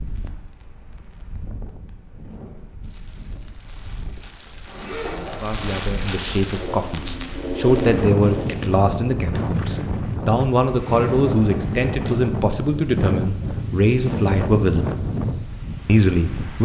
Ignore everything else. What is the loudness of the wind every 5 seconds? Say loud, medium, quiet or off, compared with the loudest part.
quiet, loud, loud, loud.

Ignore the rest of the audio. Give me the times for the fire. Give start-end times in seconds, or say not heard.
0.0-8.7.